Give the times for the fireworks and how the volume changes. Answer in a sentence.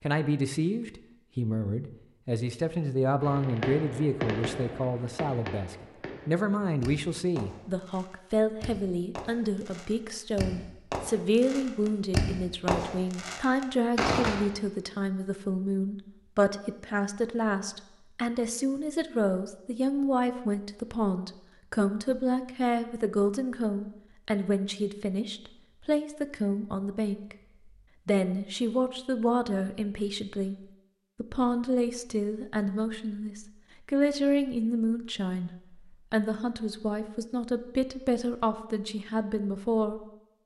The fireworks can be heard from 3.2 to 14.4 s, getting quieter then louder.